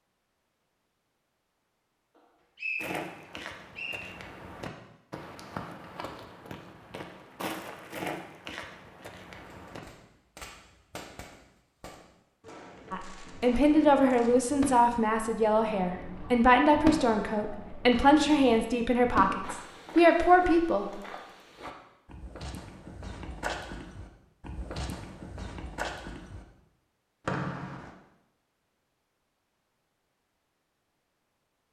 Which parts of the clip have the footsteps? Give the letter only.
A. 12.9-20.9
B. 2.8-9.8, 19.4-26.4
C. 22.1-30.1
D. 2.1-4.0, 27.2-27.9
B.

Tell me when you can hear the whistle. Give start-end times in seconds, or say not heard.
2.1-4.0, 27.2-27.9.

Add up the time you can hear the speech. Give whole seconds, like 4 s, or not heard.
8 s.